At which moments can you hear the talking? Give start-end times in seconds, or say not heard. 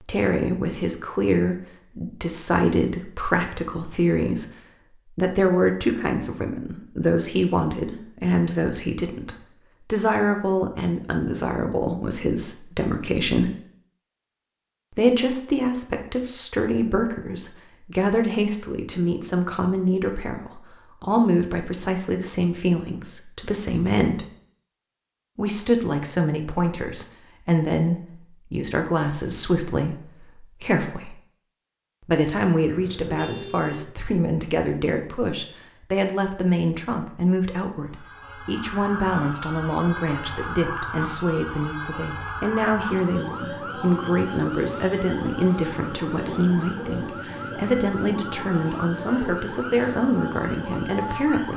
0.0-4.5, 5.1-13.6, 14.9-24.2, 25.4-31.1, 32.0-51.5.